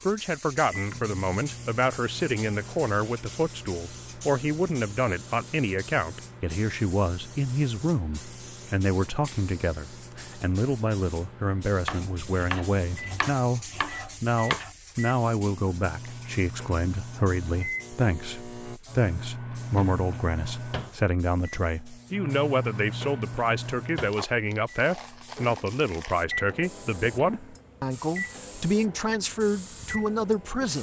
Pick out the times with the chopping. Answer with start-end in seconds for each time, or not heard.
11.8-14.7.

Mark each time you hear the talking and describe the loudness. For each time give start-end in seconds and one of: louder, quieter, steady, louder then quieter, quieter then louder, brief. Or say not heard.
0.1-30.7 steady.